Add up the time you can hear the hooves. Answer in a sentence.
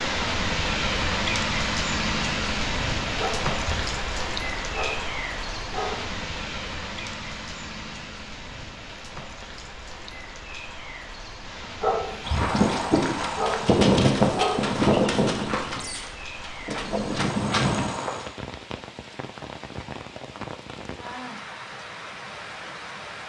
The hooves can be heard for 6 seconds in total.